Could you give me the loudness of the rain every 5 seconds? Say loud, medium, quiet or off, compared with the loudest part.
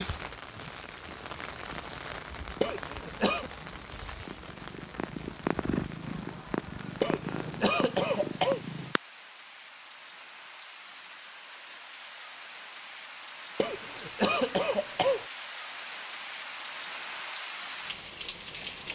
loud, medium, medium, loud.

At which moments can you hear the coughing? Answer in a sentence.
You can hear the coughing from 2.6 to 3.5 s, from 7.0 to 8.6 s and from 13.6 to 15.2 s.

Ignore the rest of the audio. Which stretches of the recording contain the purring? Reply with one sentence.
You can hear the purring from 0.0 to 9.0 s.